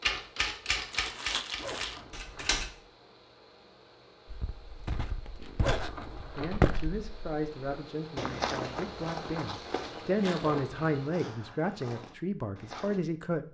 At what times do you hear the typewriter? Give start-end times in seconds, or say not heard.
0.0-2.7.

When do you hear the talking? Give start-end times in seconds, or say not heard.
6.3-13.4.